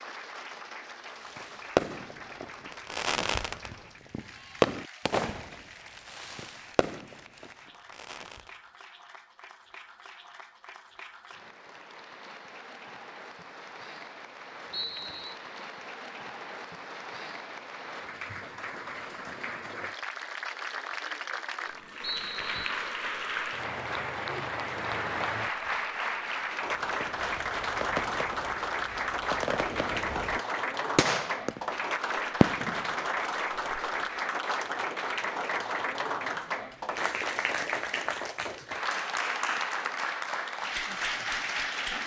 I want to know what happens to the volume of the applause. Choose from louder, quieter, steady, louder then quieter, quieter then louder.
louder.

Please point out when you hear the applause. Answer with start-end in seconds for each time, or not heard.
0.0-42.0.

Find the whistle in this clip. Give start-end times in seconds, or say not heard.
14.7-15.3, 22.0-22.7.